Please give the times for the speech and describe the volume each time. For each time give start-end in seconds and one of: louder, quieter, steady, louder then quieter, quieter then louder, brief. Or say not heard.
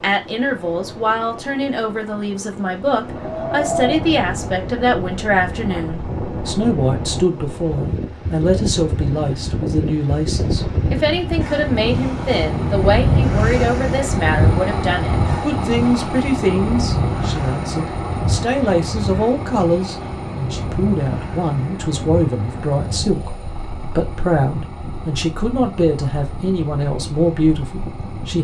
0.0-28.3 steady.